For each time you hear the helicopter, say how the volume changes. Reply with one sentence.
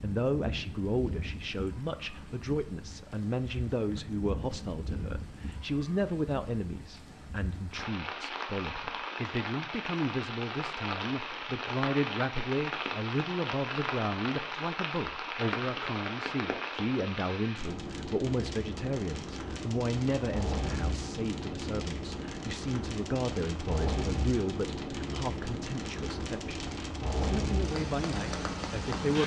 The helicopter can't be heard in this clip.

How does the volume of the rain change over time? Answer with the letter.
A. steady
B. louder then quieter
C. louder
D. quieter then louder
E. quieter
C.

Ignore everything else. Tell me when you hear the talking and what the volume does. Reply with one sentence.
The talking can be heard from 0.0 to 29.2 s, at a steady volume.